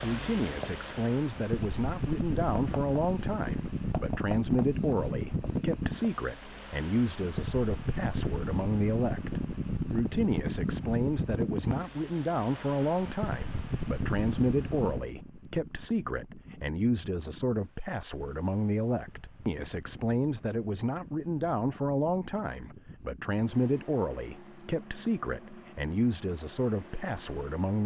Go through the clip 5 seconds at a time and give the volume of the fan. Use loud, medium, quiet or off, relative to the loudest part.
loud, loud, loud, quiet, quiet, quiet.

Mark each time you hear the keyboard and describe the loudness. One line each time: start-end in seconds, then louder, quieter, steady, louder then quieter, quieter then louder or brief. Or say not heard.
not heard.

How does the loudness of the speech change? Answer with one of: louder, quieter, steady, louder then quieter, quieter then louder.
steady.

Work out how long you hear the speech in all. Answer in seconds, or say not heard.
28 s.